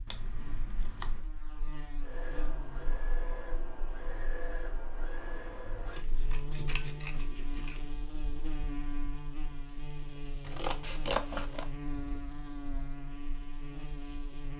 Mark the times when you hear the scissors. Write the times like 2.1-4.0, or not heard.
0.1-1.2, 6.0-7.8, 10.4-11.7.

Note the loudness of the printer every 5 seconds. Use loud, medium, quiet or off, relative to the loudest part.
loud, loud, off.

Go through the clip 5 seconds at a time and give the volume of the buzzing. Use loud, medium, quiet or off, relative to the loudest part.
medium, loud, loud.